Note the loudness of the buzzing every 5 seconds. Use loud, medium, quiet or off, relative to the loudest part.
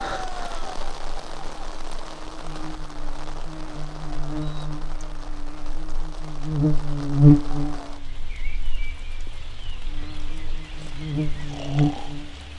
quiet, loud, medium.